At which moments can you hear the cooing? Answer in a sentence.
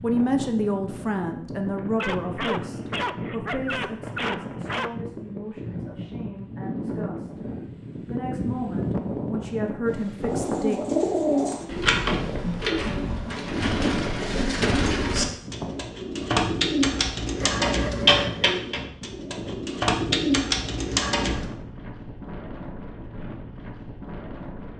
The cooing can be heard from 10.2 to 21.5 s.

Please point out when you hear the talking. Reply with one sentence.
You can hear the talking from 0.0 to 7.4 s and from 8.1 to 10.8 s.